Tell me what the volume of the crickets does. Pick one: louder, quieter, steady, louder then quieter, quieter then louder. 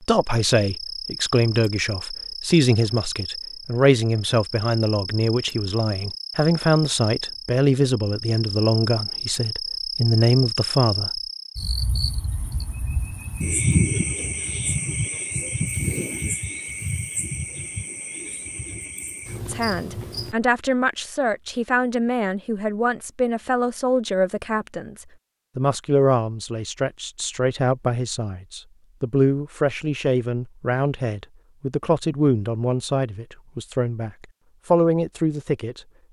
louder then quieter.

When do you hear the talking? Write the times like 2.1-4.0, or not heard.
0.0-11.2, 19.4-35.8.